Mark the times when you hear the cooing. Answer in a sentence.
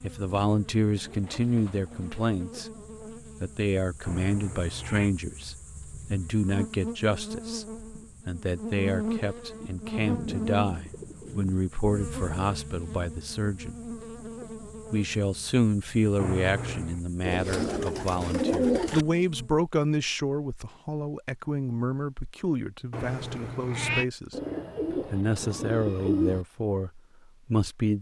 The cooing can be heard from 0.9 to 2.4 s, from 10.0 to 11.6 s, from 17.2 to 19.1 s and from 24.3 to 26.4 s.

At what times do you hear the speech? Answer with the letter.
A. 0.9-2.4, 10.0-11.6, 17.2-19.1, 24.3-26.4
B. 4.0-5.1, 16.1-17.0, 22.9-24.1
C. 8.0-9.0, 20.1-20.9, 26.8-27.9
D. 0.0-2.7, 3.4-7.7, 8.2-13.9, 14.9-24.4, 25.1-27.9
D.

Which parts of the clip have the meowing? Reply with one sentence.
The meowing can be heard from 4.0 to 5.1 s, from 16.1 to 17.0 s and from 22.9 to 24.1 s.